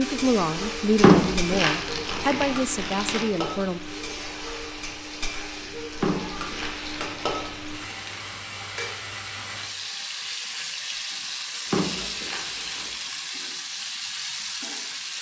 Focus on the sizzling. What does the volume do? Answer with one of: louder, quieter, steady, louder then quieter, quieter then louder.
steady.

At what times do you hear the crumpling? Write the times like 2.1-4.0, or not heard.
0.9-3.2, 6.0-8.2, 11.7-12.9.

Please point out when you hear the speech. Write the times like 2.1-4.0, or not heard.
0.0-3.8.